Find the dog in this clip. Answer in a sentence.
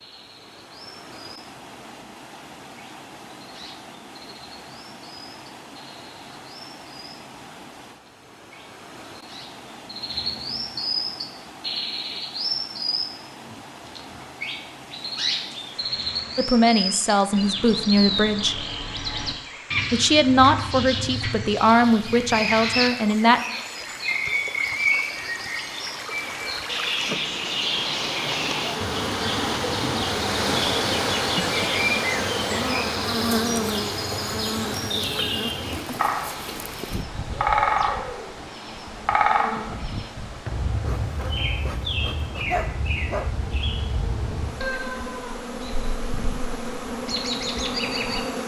You can hear the dog from 42.5 to 43.3 s.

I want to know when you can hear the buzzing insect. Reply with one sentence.
You can hear the buzzing insect from 26.8 to 48.4 s.